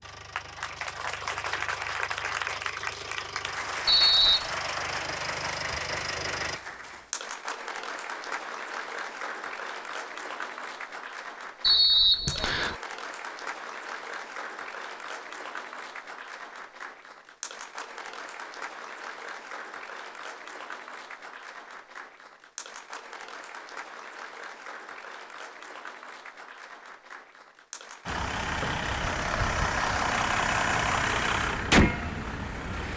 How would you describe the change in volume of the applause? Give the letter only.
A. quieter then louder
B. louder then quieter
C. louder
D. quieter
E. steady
D.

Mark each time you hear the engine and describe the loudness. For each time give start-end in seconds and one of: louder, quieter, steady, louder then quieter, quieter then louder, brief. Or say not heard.
0.0-6.6 louder
28.1-32.9 louder.